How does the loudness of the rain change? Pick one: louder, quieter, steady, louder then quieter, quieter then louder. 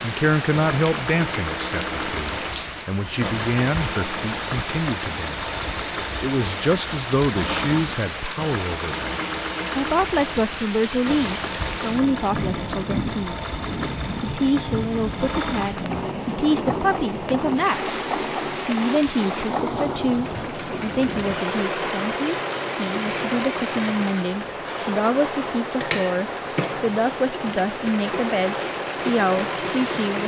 steady.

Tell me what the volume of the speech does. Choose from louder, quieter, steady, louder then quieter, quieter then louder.
steady.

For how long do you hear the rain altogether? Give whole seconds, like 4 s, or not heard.
30 s.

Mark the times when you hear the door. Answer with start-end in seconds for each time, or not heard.
not heard.